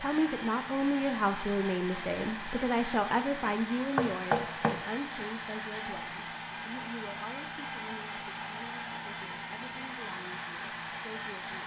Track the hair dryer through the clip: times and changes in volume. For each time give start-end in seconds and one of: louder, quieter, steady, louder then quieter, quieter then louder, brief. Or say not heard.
0.0-11.6 steady.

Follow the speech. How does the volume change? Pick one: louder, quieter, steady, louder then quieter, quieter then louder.
quieter.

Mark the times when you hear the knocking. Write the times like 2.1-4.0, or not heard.
4.0-4.8.